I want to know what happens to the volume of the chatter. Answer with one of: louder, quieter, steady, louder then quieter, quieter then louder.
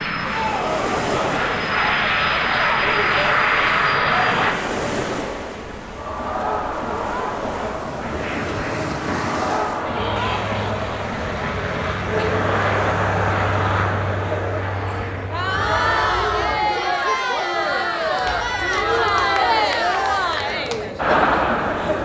louder.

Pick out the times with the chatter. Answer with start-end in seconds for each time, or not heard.
0.2-22.0.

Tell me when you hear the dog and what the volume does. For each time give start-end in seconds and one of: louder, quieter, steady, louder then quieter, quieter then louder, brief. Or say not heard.
not heard.